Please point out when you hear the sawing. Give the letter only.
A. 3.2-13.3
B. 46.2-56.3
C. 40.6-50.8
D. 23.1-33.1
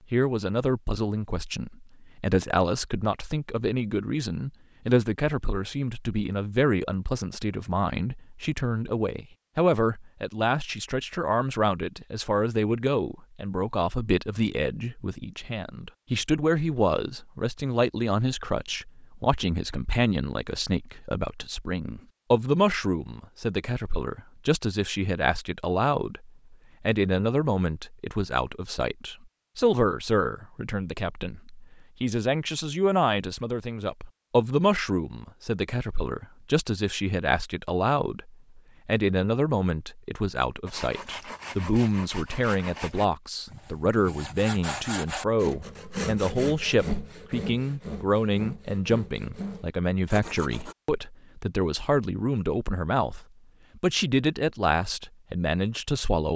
C.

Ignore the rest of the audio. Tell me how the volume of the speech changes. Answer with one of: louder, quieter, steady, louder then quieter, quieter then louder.
steady.